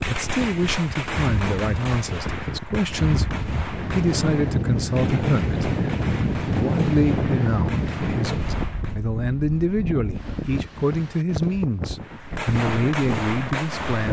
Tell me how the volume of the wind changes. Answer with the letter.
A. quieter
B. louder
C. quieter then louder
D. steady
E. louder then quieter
E.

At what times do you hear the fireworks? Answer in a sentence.
You can hear the fireworks from 0.0 to 8.9 s and from 12.0 to 14.0 s.